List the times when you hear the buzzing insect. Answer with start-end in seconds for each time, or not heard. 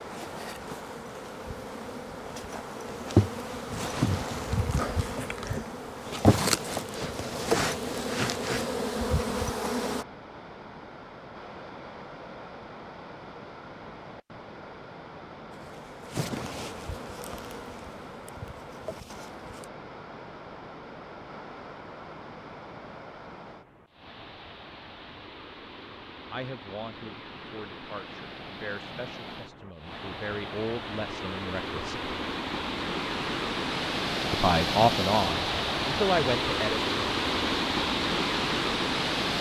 0.0-10.1, 15.5-19.7.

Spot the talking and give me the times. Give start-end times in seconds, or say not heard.
26.3-32.1, 34.3-36.8.